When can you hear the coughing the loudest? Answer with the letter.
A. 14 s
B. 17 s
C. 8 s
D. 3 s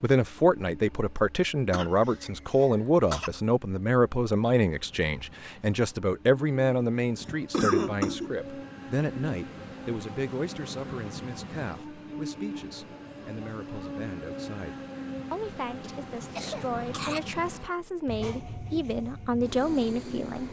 C.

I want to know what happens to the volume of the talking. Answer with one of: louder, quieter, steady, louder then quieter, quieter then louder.
quieter then louder.